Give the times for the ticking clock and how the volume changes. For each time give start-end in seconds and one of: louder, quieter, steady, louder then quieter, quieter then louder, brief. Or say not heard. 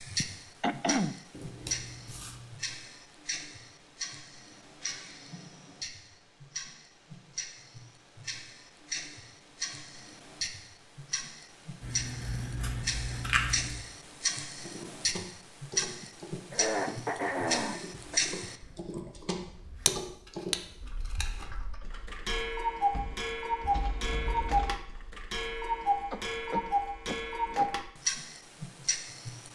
0.0-29.5 louder.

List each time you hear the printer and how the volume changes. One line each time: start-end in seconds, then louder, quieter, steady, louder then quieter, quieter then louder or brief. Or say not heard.
not heard.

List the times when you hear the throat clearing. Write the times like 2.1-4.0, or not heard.
0.2-1.1, 15.8-18.2, 26.1-27.8.